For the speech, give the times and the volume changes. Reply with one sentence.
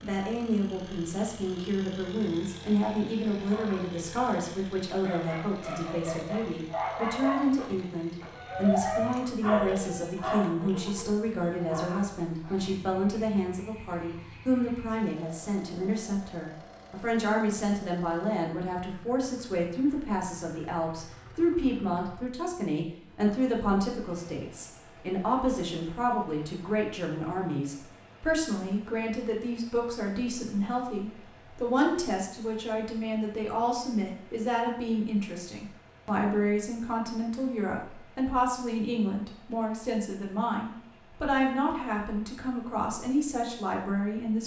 The speech can be heard from 0.0 to 44.4 s, at a steady volume.